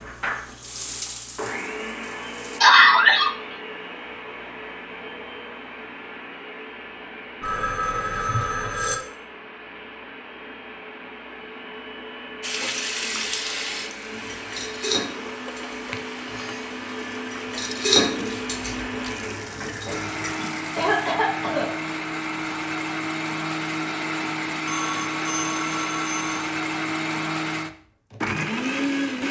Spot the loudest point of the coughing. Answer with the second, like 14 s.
3 s.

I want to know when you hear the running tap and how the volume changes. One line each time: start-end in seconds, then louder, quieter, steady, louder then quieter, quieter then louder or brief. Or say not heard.
0.0-2.6 brief
12.4-21.1 quieter.